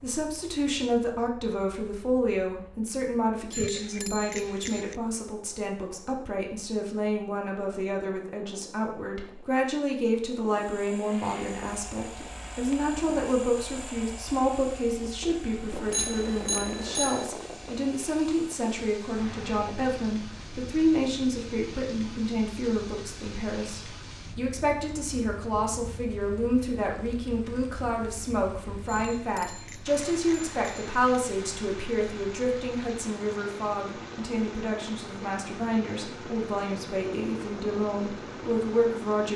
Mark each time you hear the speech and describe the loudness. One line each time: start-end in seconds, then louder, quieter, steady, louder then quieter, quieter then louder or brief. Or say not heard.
0.0-39.3 steady.